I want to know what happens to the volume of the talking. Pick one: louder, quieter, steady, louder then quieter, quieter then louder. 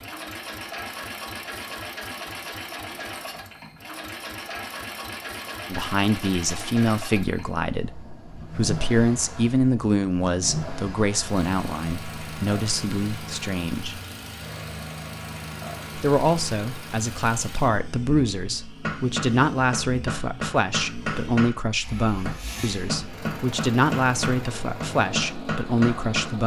steady.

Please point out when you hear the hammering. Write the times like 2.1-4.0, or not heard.
18.8-26.4.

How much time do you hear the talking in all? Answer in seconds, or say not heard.
19 s.